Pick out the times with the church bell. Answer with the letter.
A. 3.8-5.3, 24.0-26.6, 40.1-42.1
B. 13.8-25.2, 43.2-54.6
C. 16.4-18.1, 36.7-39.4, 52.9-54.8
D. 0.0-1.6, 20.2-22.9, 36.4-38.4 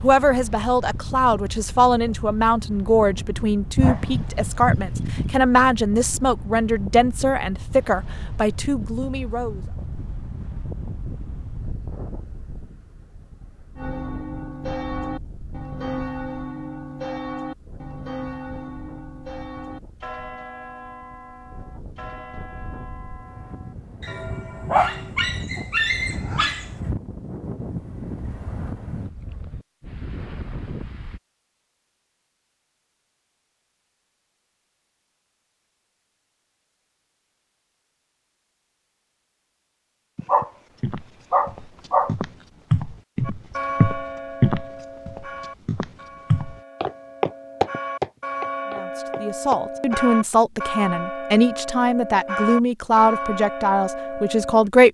B.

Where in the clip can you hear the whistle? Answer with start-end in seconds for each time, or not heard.
not heard.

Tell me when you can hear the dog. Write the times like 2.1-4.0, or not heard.
3.8-5.3, 24.0-26.6, 40.1-42.1.